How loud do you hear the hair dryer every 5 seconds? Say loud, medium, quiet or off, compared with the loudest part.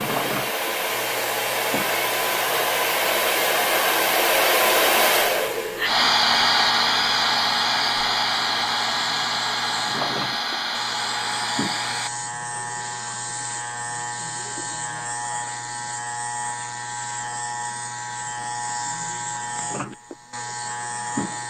loud, loud, medium, off, off.